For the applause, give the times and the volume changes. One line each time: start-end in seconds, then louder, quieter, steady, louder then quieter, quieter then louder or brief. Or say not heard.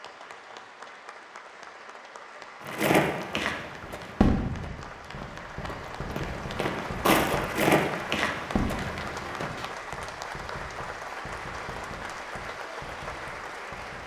0.0-14.0 louder.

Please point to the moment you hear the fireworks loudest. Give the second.
4 s.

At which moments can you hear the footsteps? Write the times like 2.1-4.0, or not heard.
2.6-9.7.